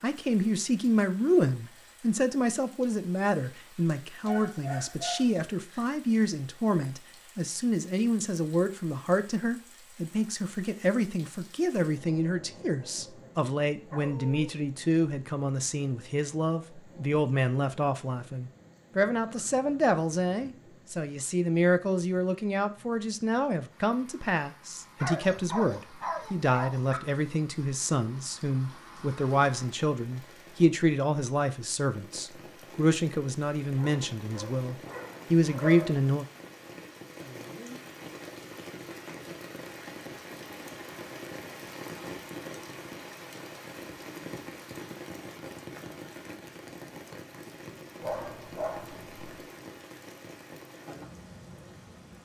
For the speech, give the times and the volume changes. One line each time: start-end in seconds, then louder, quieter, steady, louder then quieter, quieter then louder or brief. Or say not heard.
0.0-36.2 steady.